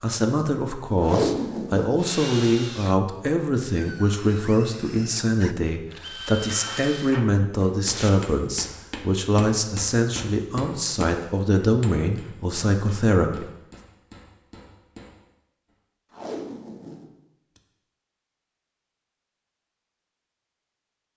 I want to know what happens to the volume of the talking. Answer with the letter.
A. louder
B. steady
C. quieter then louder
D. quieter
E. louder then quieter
B.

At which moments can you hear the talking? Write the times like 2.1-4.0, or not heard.
0.0-13.4.